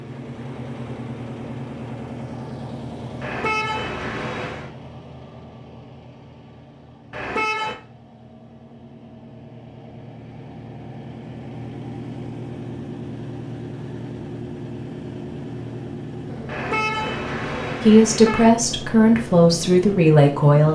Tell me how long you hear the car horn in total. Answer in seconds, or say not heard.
4 s.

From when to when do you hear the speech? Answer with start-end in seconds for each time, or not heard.
17.8-20.6.